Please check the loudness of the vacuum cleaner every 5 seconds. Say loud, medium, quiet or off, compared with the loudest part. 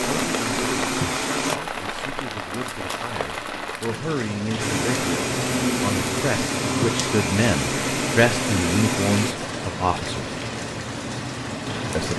loud, loud, off.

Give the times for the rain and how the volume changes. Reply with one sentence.
You can hear the rain from 0.0 to 12.1 s, at a steady volume.